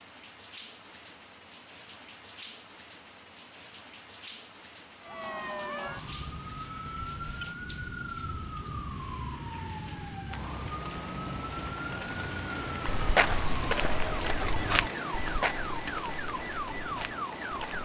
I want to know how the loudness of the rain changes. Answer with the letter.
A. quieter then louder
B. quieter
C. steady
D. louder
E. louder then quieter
D.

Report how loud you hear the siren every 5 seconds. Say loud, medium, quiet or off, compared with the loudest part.
off, loud, loud, loud.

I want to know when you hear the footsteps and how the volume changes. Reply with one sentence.
The footsteps can be heard from 12.8 to 17.8 s, getting quieter.